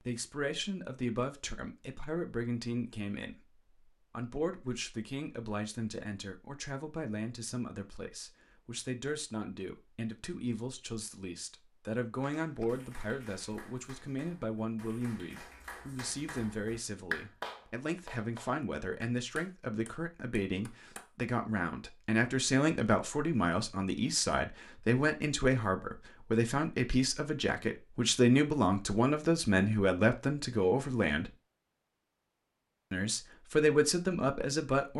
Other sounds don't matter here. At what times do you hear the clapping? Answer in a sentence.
You can hear the clapping from 12.4 to 21.1 s.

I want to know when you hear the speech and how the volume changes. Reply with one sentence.
You can hear the speech from 0.0 to 31.3 s, getting louder; and briefly from 32.9 to 34.9 s.